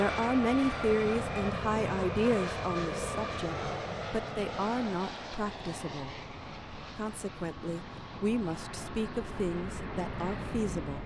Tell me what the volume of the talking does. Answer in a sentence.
The volume of the talking goes down.